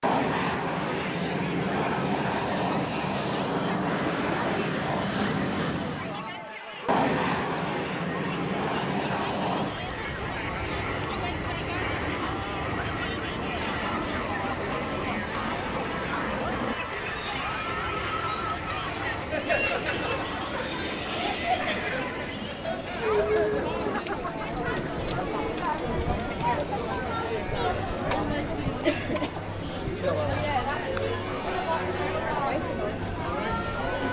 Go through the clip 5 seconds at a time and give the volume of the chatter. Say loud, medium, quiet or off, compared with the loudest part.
medium, medium, medium, loud, loud, loud, loud.